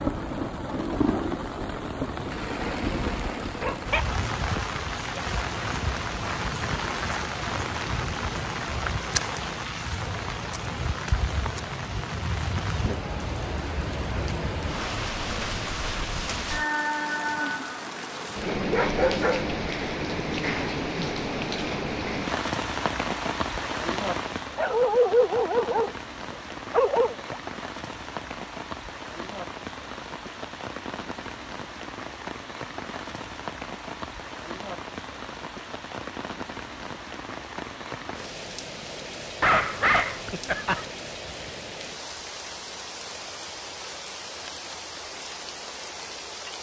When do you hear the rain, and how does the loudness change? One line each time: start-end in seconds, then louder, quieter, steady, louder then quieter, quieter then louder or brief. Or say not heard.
0.0-46.5 quieter.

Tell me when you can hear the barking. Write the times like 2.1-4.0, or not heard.
3.6-4.0, 18.6-19.5, 24.6-27.4, 39.4-40.9.